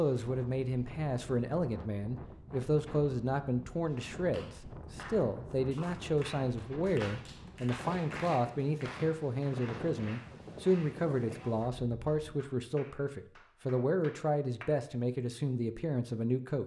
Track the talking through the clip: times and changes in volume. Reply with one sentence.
The talking can be heard from 0.0 to 16.6 s, at a steady volume.